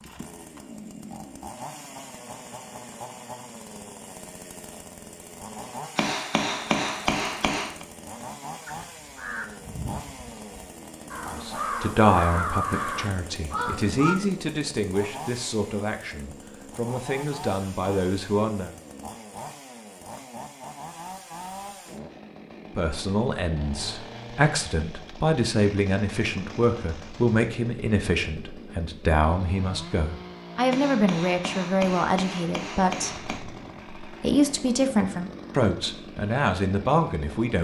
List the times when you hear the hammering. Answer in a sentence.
You can hear the hammering from 6.0 to 7.8 s and from 30.7 to 33.5 s.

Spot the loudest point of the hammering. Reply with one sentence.
The loudest moment of the hammering is at 7 seconds.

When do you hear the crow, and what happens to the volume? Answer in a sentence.
The crow can be heard from 8.7 to 14.2 s, getting quieter then louder.